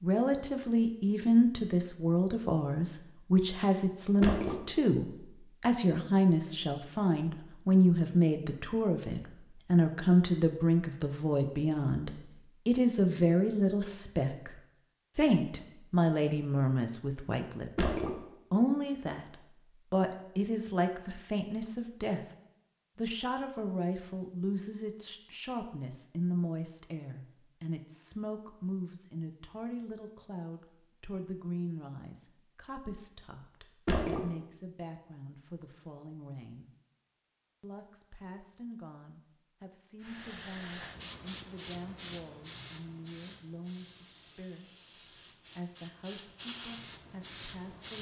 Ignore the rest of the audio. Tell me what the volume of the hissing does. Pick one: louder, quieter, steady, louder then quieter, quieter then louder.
quieter then louder.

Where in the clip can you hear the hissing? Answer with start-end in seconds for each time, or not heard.
40.0-47.9.